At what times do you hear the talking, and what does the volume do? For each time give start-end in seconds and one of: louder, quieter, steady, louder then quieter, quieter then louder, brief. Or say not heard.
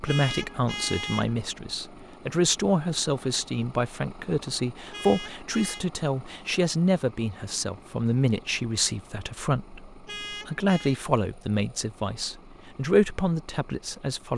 0.0-14.3 steady.